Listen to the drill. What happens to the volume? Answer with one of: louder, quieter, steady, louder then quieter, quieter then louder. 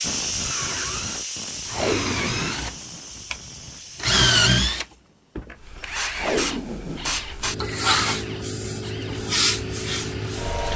louder then quieter.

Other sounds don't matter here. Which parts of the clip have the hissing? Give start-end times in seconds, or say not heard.
0.0-4.2, 5.5-10.7.